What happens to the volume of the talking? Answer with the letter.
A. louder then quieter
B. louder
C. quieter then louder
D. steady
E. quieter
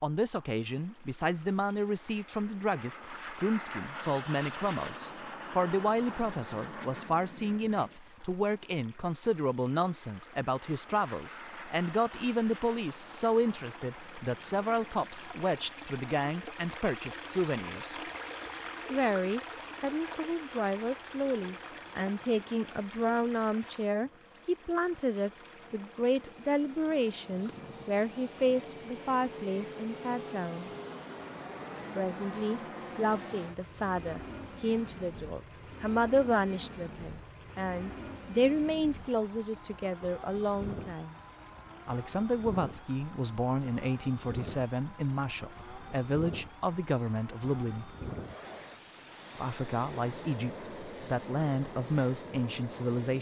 D.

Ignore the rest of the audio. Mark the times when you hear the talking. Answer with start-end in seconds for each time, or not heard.
0.0-18.0, 18.9-30.7, 31.9-41.1, 41.9-48.0, 49.4-53.1.